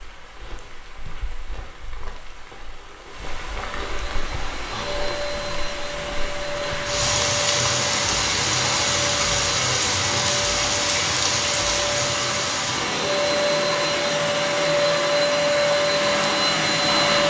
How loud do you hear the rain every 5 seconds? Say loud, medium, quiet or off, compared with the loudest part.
quiet, loud, loud, medium.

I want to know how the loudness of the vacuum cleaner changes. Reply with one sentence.
The loudness of the vacuum cleaner goes up.